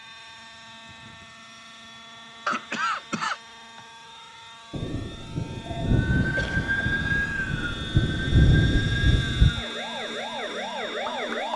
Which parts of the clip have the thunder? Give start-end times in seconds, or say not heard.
4.7-9.7.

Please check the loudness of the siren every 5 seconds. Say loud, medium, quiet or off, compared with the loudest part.
off, loud, loud.